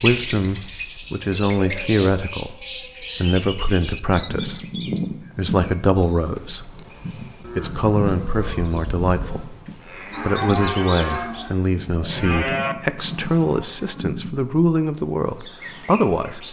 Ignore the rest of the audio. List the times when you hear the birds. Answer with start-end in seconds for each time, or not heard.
0.0-16.4.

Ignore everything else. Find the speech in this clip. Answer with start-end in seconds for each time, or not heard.
0.0-4.7, 5.3-6.8, 7.4-9.6, 10.2-16.4.